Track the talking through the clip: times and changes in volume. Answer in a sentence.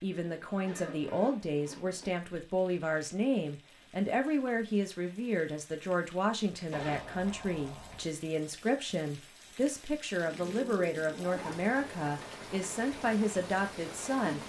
The talking can be heard from 0.0 to 14.4 s, at a steady volume.